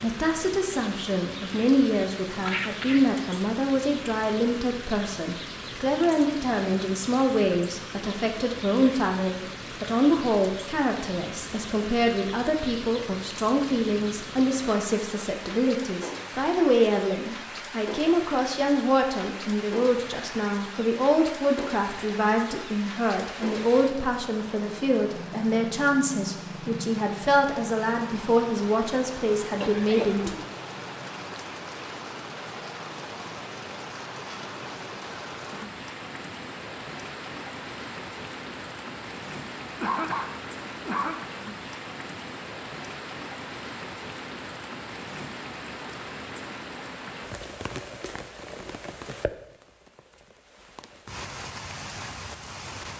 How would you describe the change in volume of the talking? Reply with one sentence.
The volume of the talking stays about the same.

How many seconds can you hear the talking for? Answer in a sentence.
The talking can be heard for 30 seconds in total.